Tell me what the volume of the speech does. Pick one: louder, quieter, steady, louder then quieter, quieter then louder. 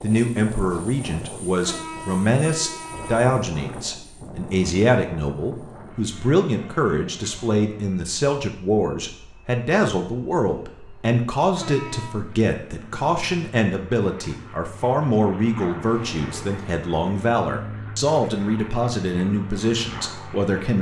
steady.